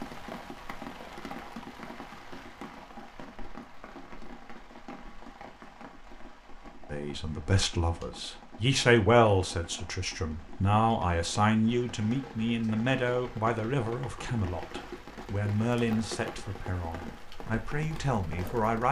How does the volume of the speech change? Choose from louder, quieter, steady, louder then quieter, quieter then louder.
quieter.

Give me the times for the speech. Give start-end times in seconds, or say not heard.
6.9-18.8.